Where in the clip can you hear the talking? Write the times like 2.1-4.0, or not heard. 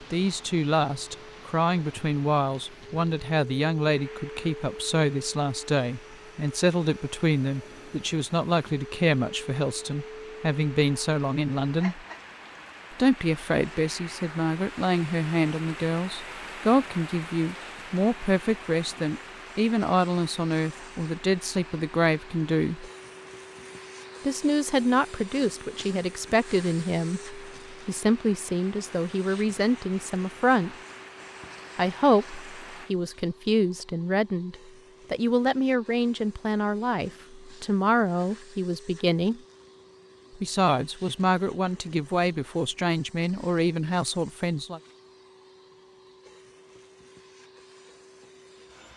0.1-12.0, 12.9-22.9, 24.2-30.8, 31.8-39.4, 40.4-44.8.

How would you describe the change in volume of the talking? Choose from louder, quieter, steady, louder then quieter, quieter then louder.
steady.